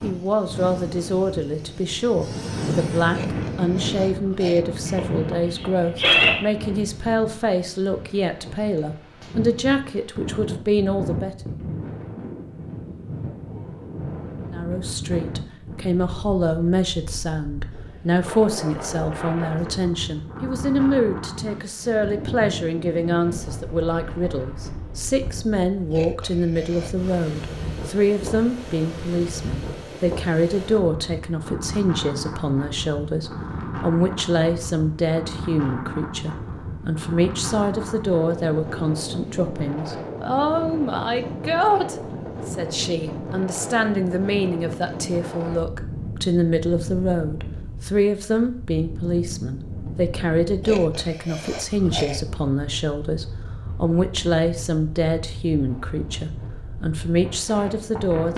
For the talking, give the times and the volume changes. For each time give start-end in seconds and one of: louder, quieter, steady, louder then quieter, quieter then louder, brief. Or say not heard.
0.0-11.3 steady
14.5-58.3 steady.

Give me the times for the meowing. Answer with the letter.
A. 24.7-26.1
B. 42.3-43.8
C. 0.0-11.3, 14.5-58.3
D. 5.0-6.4
D.